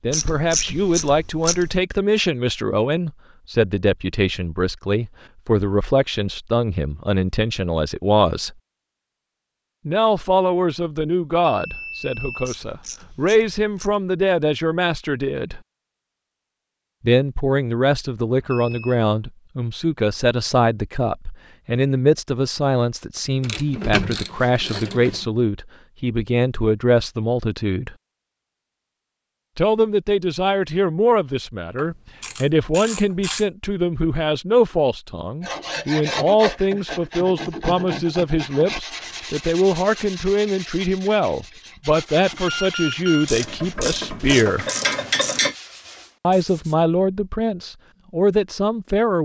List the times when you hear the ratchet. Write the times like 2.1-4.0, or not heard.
0.1-1.8, 12.4-13.9, 23.4-25.2, 31.8-33.5, 43.2-45.5.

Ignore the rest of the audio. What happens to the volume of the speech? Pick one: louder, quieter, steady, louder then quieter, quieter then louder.
steady.